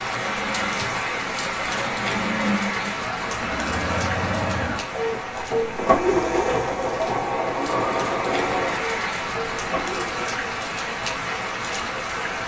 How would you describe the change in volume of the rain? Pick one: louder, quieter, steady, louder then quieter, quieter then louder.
quieter then louder.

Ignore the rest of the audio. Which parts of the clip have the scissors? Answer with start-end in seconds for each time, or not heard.
not heard.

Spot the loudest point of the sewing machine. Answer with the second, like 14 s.
6 s.